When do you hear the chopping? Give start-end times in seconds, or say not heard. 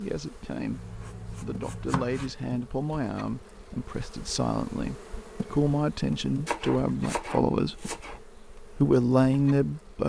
0.7-2.4, 6.5-8.2.